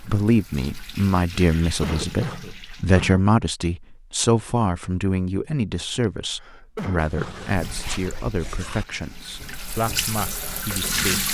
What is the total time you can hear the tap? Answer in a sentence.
The tap can be heard for 7 seconds in total.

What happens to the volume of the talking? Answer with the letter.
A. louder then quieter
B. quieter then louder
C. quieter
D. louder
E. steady
C.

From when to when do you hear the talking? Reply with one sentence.
The talking can be heard from 0.1 to 11.2 s.